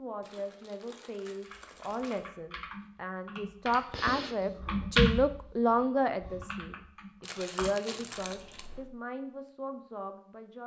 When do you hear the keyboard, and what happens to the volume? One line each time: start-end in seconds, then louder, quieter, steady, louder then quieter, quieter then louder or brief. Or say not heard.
1.4-8.8 louder then quieter.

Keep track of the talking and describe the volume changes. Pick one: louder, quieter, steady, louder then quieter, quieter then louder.
louder then quieter.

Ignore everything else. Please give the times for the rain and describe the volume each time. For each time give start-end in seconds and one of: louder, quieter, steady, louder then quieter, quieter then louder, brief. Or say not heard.
not heard.